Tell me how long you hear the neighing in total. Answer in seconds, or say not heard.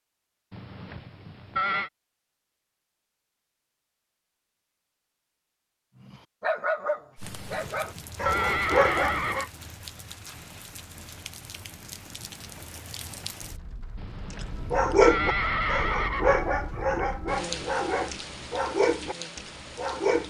6 s.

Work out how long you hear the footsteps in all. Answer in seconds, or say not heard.
not heard.